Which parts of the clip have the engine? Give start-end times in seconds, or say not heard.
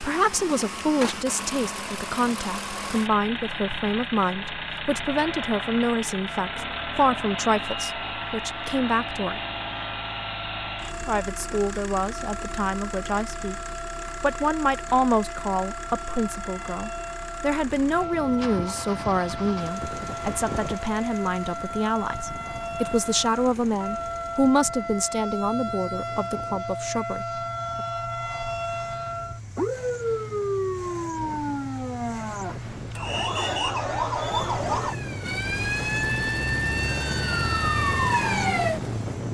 0.0-39.2.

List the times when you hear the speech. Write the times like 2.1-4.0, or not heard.
0.0-9.4, 11.1-13.6, 14.2-27.9.